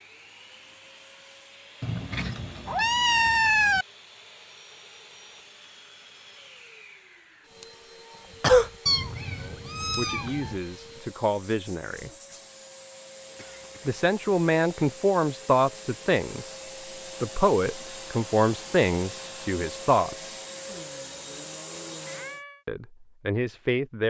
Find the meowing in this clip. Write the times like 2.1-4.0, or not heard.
1.8-3.9, 8.8-10.6, 22.1-22.6.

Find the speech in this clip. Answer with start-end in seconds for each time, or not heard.
9.4-12.1, 13.8-16.6, 17.2-20.4, 22.6-24.0.